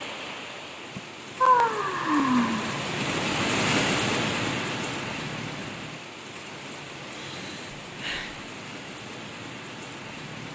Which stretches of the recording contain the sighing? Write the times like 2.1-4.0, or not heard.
0.9-2.9, 7.0-8.4.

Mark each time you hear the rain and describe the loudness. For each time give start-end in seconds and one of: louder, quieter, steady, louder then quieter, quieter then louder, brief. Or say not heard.
0.0-10.5 louder then quieter.